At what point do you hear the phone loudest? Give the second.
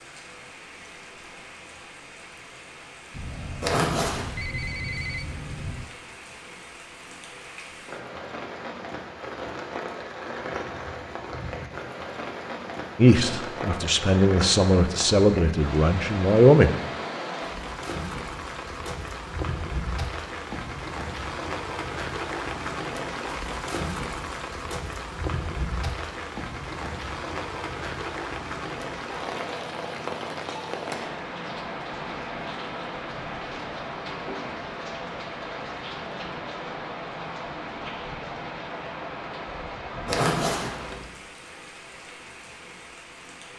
5 s.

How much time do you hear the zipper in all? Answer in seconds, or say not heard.
2 s.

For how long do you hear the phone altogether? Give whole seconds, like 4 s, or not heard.
3 s.